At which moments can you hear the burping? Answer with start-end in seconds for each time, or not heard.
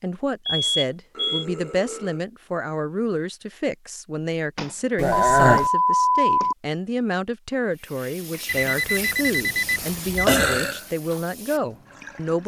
0.6-2.2, 5.0-5.7, 10.2-10.8.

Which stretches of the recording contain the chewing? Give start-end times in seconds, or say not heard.
not heard.